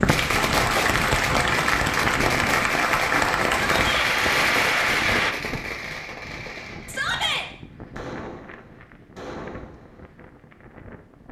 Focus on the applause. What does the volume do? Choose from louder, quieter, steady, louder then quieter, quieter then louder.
steady.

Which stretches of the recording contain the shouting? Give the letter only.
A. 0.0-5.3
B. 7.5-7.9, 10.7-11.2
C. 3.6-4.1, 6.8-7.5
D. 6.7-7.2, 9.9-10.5
C.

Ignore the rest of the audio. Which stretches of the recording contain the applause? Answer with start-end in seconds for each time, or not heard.
0.0-5.3.